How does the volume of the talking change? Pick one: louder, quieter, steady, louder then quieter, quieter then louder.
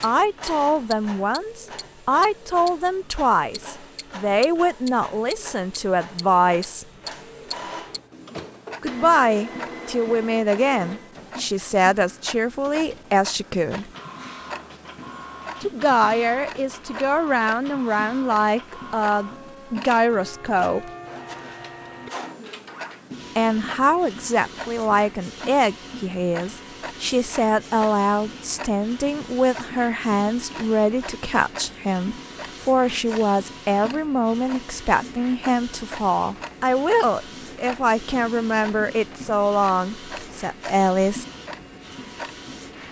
steady.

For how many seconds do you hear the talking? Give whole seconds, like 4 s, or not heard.
35 s.